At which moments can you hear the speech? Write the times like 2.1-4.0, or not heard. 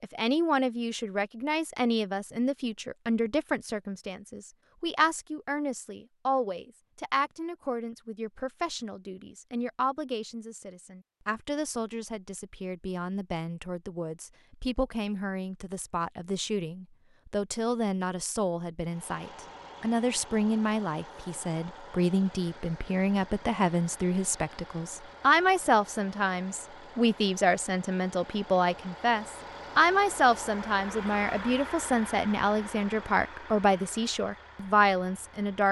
0.0-35.6.